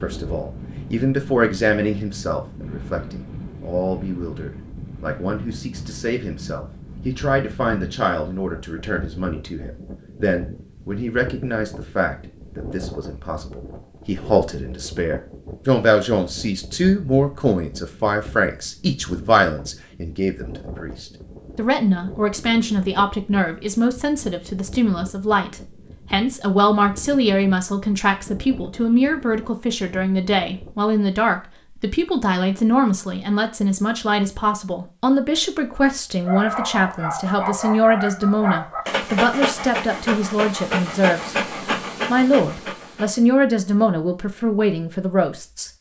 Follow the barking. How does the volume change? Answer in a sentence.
The loudness of the barking stays about the same.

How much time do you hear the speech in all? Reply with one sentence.
The speech can be heard for 45 seconds in total.